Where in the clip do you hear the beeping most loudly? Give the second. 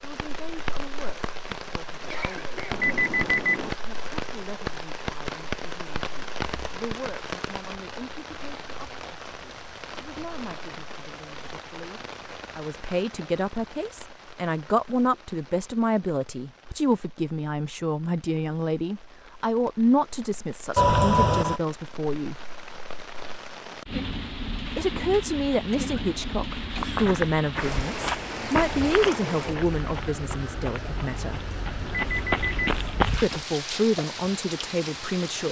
3 s.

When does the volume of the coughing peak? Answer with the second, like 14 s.
21 s.